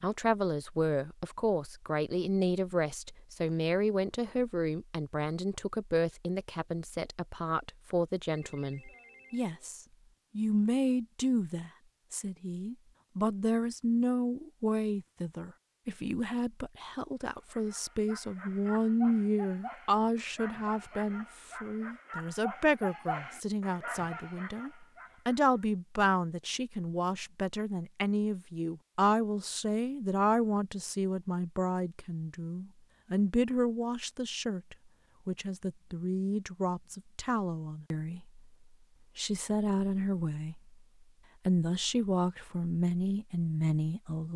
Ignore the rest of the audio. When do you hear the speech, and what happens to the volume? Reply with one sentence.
The speech can be heard from 0.0 to 38.4 s, at a steady volume; briefly from 39.1 to 40.6 s; and briefly from 41.5 to 44.3 s.